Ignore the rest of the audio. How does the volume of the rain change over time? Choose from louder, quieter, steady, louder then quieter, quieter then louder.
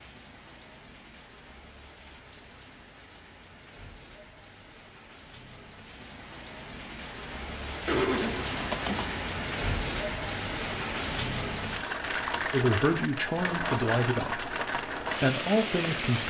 louder.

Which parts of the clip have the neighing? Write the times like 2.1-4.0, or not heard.
7.8-9.2.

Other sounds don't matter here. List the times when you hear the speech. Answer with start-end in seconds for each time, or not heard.
12.5-16.2.